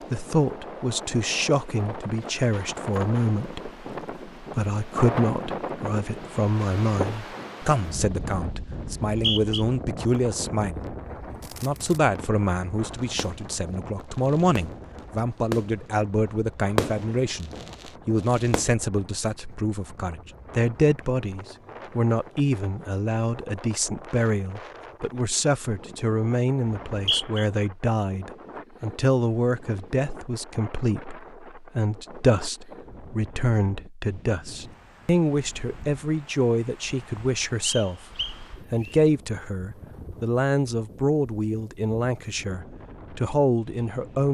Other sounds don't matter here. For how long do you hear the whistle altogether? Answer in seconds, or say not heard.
3 s.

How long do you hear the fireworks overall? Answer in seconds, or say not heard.
7 s.